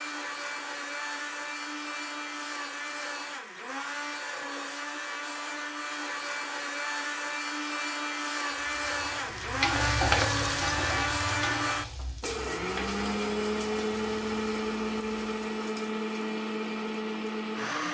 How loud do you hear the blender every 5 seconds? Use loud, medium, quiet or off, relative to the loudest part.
medium, loud, loud, loud.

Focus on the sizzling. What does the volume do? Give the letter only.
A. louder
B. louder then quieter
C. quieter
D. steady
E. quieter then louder
C.